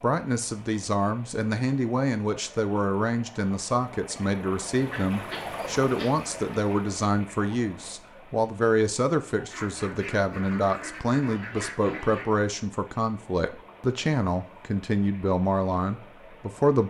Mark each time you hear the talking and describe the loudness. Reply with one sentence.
You can hear the talking from 0.0 to 16.8 s, at a steady volume.